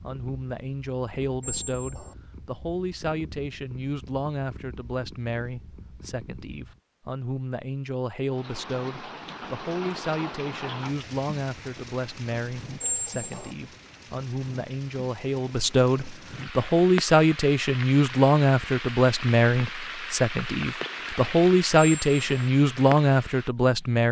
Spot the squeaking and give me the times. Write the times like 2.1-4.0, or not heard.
1.4-2.1, 12.8-13.6, 21.8-22.5.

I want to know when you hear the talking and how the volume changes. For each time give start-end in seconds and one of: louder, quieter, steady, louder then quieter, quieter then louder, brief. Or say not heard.
0.0-24.0 louder.